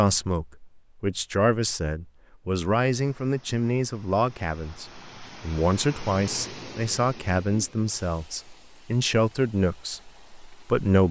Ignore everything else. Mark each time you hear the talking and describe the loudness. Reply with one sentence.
You can hear the talking from 0.0 to 11.0 s, at a steady volume.